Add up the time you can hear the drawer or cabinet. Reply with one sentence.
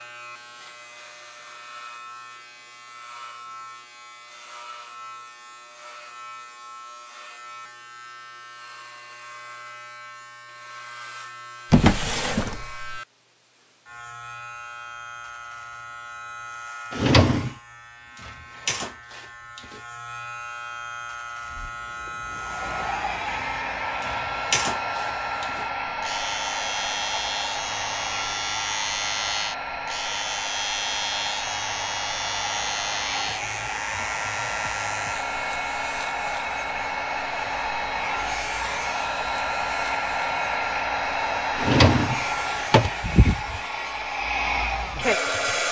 The drawer or cabinet can be heard for 3 seconds in total.